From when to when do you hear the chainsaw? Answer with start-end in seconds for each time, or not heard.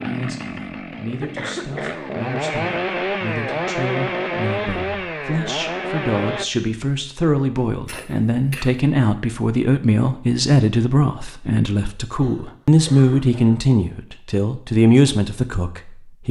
0.0-6.5.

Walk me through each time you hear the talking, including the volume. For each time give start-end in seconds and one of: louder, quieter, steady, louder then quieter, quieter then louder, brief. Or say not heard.
0.0-16.2 louder.